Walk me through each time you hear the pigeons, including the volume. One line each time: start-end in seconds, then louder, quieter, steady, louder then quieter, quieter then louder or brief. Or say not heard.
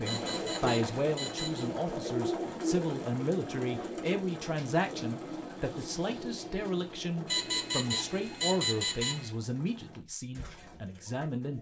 0.0-11.5 quieter.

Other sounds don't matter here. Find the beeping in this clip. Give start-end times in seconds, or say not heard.
0.0-1.7, 7.2-9.3.